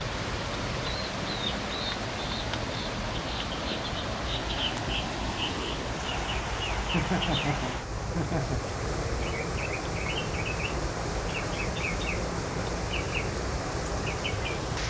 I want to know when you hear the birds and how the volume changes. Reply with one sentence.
You can hear the birds from 0.0 to 14.8 s, at a steady volume.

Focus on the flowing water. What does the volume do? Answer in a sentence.
The volume of the flowing water stays about the same.